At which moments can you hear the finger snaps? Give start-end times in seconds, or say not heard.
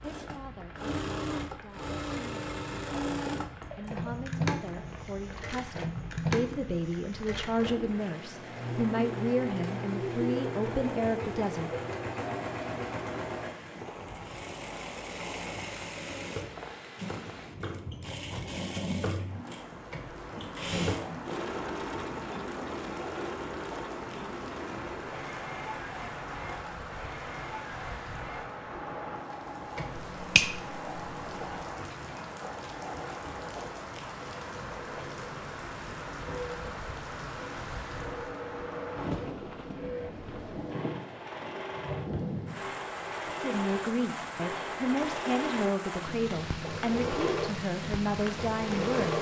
29.9-31.6.